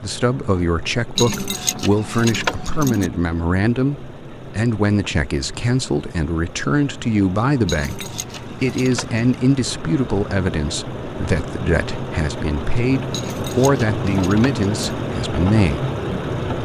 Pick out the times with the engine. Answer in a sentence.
You can hear the engine from 0.0 to 16.6 s.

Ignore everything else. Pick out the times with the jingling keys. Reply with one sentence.
You can hear the jingling keys from 1.1 to 3.1 s, from 7.7 to 9.2 s and from 13.1 to 15.0 s.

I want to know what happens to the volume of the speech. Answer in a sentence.
The loudness of the speech stays about the same.